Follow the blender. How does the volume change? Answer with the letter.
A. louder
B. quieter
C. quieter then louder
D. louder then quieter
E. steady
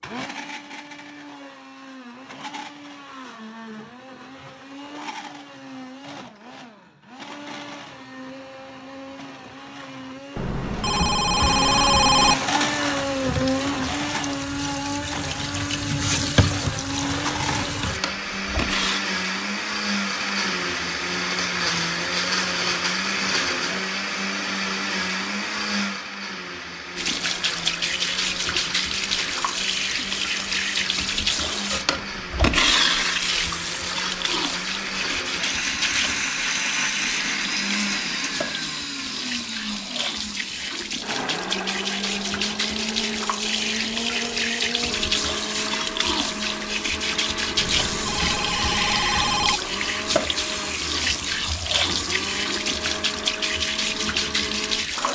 D.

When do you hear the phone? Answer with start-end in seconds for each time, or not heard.
10.3-12.3, 47.5-49.6.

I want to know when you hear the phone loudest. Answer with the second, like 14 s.
12 s.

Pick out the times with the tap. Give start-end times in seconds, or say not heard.
12.6-19.0, 26.9-55.1.